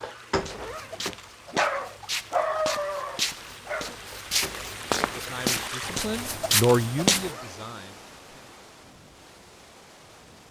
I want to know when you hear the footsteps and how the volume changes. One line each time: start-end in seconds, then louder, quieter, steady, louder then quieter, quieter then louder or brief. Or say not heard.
0.3-7.3 louder.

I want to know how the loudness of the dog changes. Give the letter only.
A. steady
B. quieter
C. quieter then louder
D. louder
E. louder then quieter
E.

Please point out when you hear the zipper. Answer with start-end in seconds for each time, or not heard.
0.5-1.1, 7.2-7.7.